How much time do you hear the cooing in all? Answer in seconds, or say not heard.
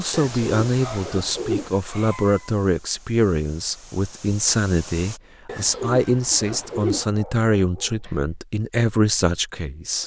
3 s.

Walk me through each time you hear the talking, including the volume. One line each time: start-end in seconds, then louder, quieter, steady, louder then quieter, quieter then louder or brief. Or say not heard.
0.0-10.0 steady.